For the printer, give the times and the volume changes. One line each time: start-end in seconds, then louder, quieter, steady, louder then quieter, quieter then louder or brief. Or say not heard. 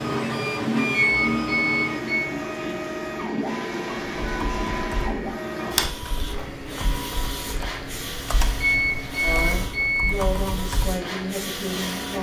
0.0-12.1 quieter.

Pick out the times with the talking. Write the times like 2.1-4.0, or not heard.
9.2-12.1.